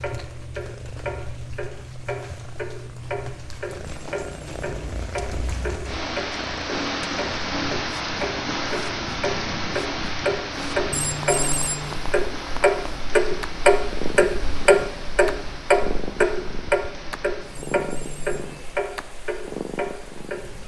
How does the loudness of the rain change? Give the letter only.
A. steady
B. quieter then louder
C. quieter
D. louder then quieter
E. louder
D.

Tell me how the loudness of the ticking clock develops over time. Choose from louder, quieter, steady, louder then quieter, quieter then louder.
louder then quieter.